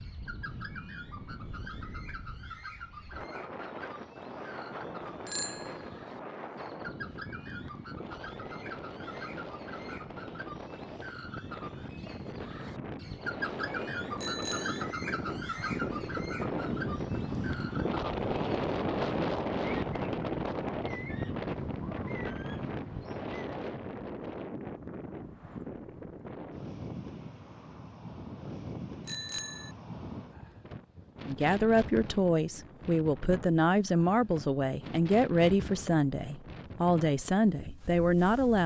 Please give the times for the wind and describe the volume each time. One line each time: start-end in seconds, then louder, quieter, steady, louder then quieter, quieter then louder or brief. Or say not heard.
0.0-38.6 louder then quieter.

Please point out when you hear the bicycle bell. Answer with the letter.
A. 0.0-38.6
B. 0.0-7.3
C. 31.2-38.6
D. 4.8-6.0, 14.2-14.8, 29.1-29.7
D.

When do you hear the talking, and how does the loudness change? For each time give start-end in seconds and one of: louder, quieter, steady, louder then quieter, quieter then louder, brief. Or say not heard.
31.2-38.6 steady.